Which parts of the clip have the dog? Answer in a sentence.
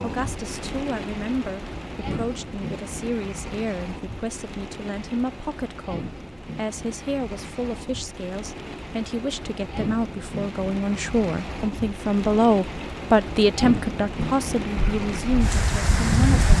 You can't hear the dog here.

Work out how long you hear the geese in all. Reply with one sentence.
The geese can be heard for 2 seconds in total.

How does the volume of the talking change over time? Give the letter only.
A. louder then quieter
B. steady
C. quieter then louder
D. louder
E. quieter
D.